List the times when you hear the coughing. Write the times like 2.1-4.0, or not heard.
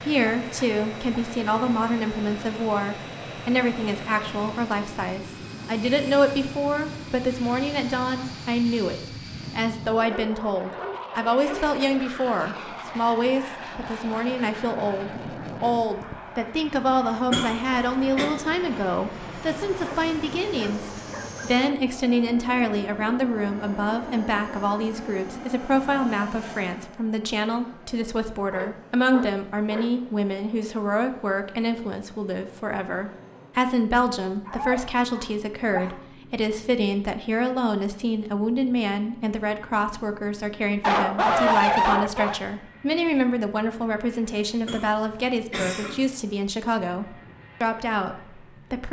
17.3-18.2, 44.6-46.0.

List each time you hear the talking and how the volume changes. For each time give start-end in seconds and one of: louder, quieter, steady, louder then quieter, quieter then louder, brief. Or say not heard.
0.0-48.8 steady.